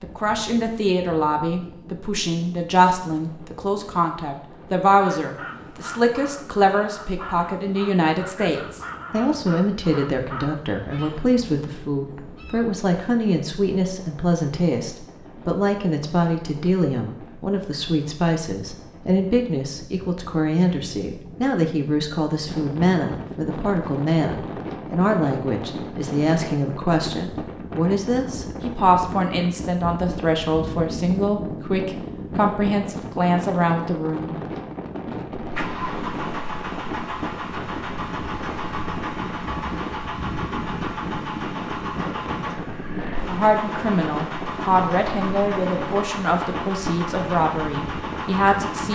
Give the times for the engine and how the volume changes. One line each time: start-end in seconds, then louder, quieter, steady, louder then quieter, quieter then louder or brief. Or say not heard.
35.4-48.9 steady.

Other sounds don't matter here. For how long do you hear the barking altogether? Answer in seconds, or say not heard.
not heard.